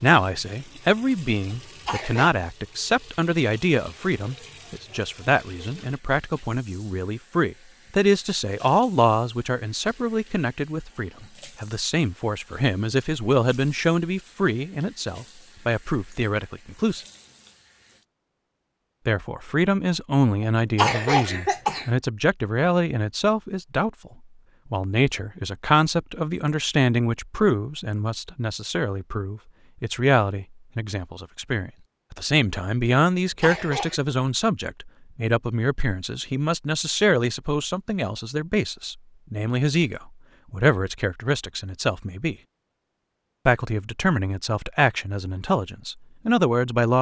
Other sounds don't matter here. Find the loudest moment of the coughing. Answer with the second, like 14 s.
21 s.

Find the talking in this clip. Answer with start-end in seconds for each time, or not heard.
0.0-17.1, 19.1-24.1, 24.7-42.4, 43.5-46.9.